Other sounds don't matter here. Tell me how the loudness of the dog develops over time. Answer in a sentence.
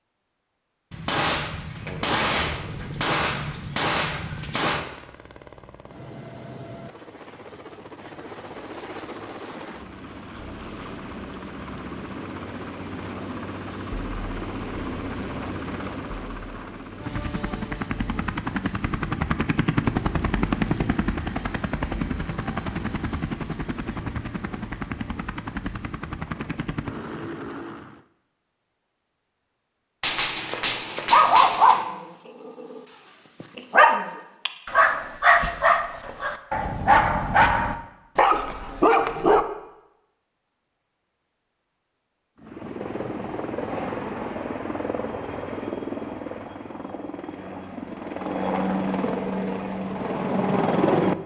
The loudness of the dog stays about the same.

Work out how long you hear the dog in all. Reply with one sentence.
You can hear the dog for 8 seconds altogether.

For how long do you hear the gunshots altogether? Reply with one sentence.
You can hear the gunshots for 6 seconds altogether.